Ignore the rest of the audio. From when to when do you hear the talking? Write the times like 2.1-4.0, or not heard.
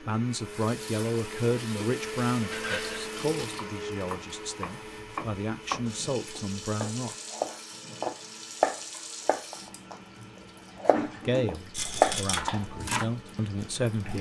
0.0-7.2, 11.2-14.1.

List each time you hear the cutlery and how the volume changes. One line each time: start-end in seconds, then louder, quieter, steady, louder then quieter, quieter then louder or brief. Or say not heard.
not heard.